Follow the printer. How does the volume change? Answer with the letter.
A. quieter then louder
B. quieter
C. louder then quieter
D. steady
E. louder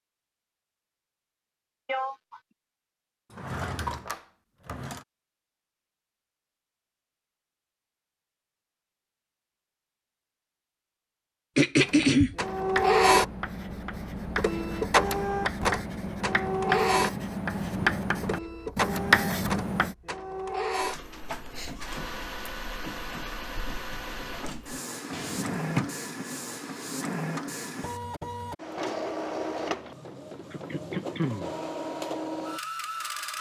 B.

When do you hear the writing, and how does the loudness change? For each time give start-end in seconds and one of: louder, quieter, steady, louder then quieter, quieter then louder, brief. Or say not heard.
11.8-19.9 louder.